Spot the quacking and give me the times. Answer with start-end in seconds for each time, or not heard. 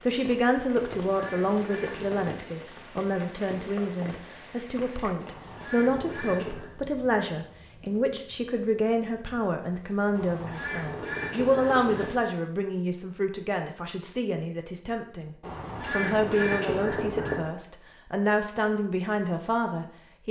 0.9-2.5, 5.2-6.8, 10.1-12.1, 15.4-17.4.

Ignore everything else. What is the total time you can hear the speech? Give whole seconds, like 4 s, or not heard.
20 s.